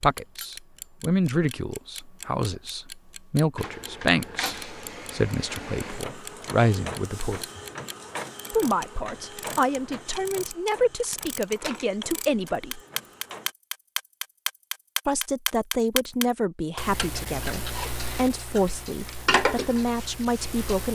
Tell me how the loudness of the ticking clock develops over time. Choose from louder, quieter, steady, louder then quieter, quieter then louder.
louder.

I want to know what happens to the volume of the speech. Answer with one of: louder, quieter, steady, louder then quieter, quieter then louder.
steady.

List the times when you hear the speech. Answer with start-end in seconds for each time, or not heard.
0.0-7.5, 8.5-12.8, 15.1-20.8.